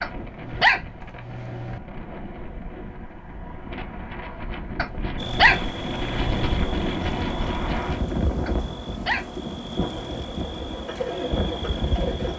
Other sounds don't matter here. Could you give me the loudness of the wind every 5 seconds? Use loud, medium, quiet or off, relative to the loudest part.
medium, loud, loud.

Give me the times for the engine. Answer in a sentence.
The engine can be heard from 9.8 to 12.3 s.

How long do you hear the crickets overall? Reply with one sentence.
The crickets can be heard for 7 seconds in total.